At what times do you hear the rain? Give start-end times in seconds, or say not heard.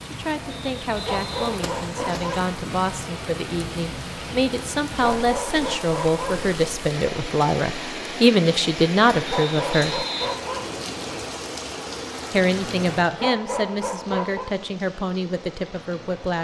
0.0-16.3.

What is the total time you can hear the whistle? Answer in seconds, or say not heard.
3 s.